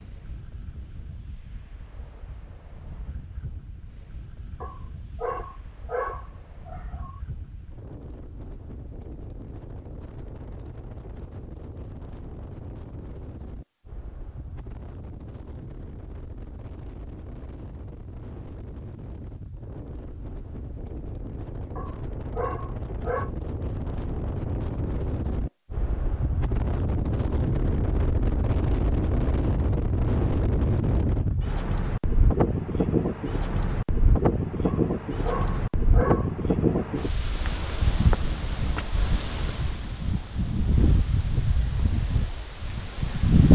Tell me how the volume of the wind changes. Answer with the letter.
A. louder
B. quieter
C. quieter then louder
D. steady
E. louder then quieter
A.